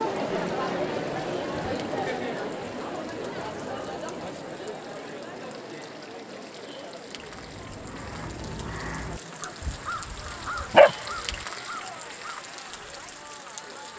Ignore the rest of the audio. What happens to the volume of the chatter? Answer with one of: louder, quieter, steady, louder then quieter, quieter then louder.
quieter.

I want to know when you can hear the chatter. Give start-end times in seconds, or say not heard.
0.0-13.9.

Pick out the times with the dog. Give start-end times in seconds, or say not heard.
9.6-11.3.